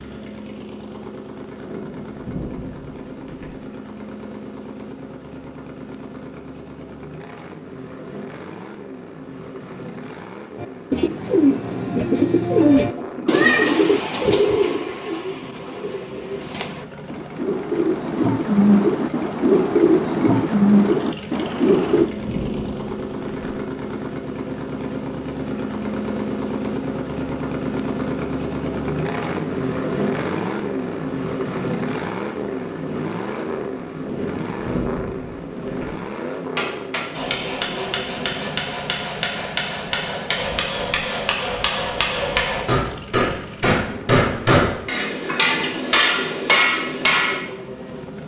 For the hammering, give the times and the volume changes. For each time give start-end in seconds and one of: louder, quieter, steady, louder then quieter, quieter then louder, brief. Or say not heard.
36.5-47.4 louder.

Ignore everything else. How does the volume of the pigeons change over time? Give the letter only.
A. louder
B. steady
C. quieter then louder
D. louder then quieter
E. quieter
C.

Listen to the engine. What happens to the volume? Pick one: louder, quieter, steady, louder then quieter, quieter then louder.
louder then quieter.